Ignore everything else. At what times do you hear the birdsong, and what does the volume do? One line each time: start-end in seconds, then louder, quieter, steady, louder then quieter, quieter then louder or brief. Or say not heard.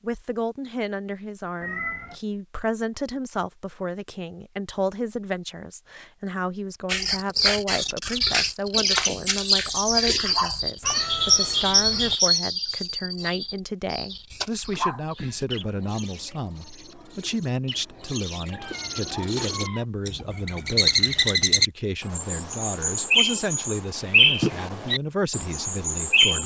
6.8-26.4 quieter then louder.